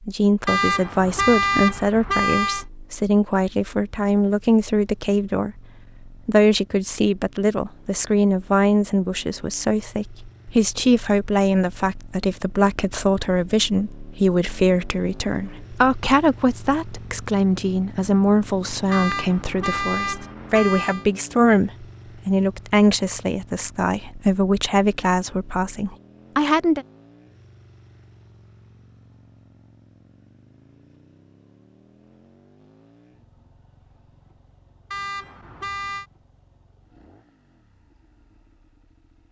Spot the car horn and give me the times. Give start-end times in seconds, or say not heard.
0.5-2.6, 18.9-21.1, 34.9-36.0.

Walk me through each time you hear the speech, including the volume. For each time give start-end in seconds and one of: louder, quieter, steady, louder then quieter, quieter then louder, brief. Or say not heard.
0.0-26.9 steady.